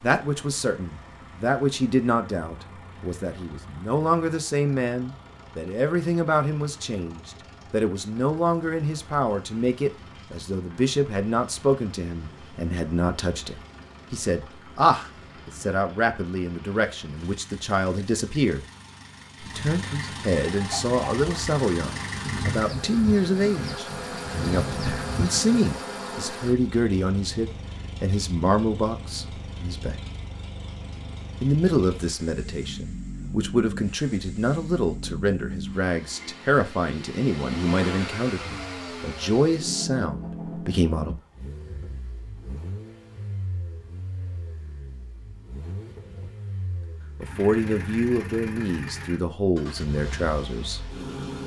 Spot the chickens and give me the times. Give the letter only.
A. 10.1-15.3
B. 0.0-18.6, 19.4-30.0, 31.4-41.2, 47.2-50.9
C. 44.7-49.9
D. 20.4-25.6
D.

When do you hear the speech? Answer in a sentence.
The speech can be heard from 0.0 to 18.6 s, from 19.4 to 30.0 s, from 31.4 to 41.2 s and from 47.2 to 50.9 s.